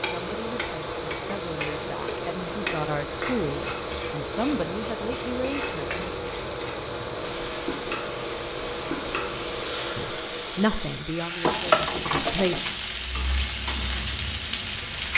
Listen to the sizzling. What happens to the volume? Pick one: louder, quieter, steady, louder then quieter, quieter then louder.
louder.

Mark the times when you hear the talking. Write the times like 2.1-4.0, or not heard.
0.0-6.0, 9.9-12.6.